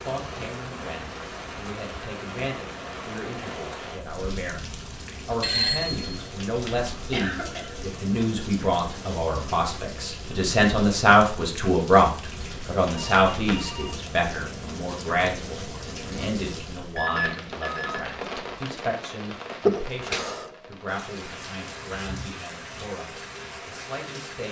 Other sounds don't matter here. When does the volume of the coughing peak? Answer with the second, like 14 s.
20 s.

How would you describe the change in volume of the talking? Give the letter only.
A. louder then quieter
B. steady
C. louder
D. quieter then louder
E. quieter
A.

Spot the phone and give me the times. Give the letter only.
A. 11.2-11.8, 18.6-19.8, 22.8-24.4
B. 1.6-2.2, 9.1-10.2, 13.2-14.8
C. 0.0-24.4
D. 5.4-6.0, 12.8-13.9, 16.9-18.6
D.